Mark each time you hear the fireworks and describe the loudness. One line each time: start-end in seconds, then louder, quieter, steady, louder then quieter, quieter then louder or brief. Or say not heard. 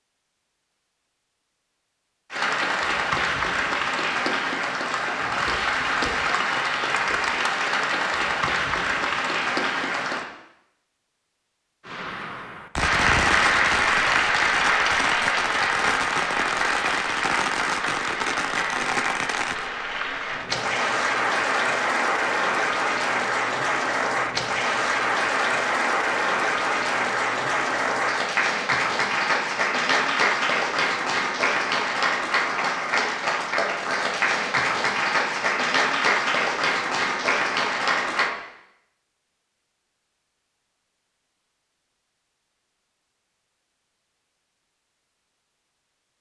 11.8-19.7 steady.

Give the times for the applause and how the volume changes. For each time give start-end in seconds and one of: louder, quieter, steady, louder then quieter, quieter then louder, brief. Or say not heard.
2.3-10.2 steady
12.8-38.3 steady.